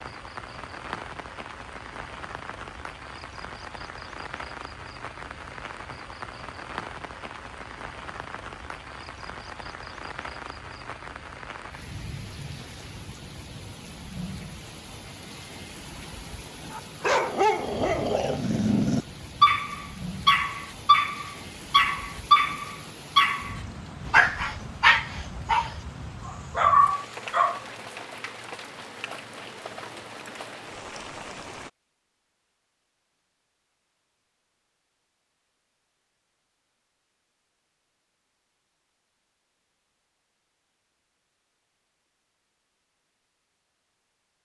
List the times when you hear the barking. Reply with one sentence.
The barking can be heard from 16.8 to 27.6 s.